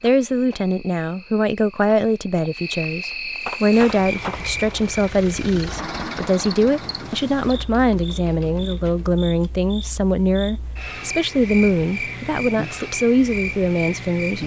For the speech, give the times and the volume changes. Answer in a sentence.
You can hear the speech from 0.0 to 14.4 s, at a steady volume.